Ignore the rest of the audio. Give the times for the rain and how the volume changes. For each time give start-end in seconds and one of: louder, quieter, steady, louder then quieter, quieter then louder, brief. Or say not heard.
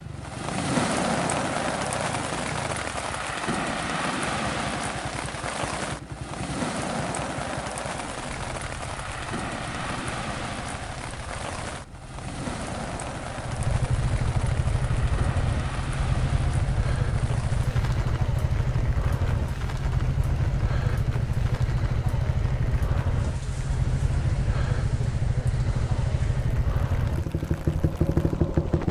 0.0-28.8 quieter.